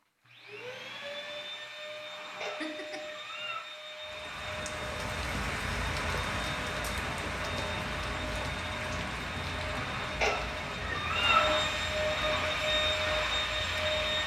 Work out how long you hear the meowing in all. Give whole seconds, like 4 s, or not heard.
3 s.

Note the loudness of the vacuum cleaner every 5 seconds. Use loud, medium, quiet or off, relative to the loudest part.
medium, medium, loud.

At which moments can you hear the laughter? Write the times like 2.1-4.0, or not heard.
2.6-3.1.